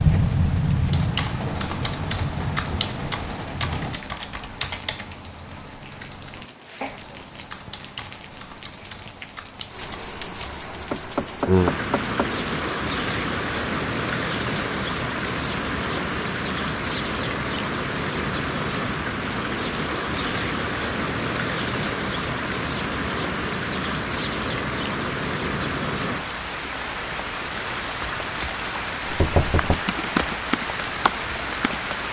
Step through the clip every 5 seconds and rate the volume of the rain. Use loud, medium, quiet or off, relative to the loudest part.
loud, quiet, loud, loud, loud, loud, loud.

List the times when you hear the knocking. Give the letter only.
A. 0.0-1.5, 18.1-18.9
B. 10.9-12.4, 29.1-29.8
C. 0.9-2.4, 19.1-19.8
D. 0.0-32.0
B.